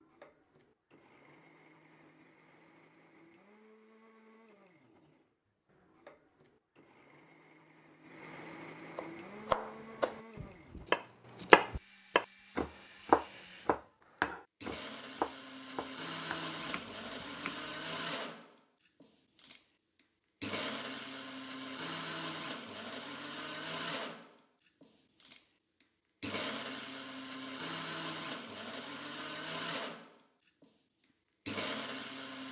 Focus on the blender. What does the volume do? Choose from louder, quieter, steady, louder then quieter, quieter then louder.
louder.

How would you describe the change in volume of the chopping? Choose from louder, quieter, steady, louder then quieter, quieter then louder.
louder then quieter.